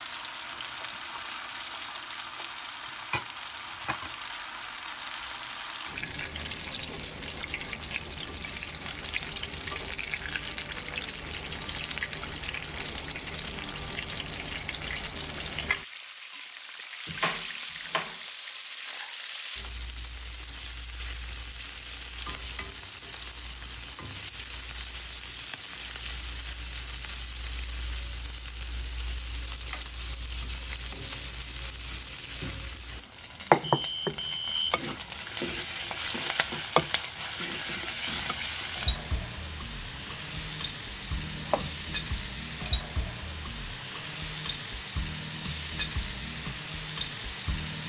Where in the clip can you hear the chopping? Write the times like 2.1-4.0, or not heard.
17.1-18.2, 39.9-42.0.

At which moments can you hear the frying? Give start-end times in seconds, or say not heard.
0.0-47.8.